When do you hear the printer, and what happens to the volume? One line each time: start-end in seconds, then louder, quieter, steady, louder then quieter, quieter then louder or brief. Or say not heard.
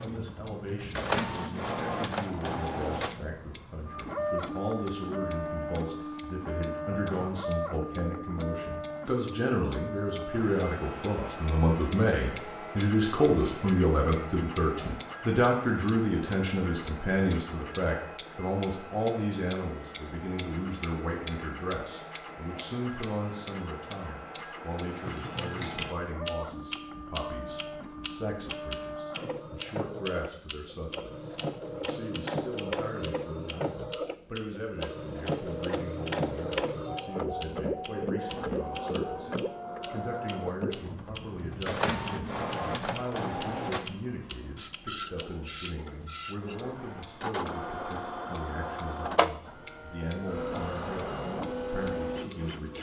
0.0-52.7 quieter then louder.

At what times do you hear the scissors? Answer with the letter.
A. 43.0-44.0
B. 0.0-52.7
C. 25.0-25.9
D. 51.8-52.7
C.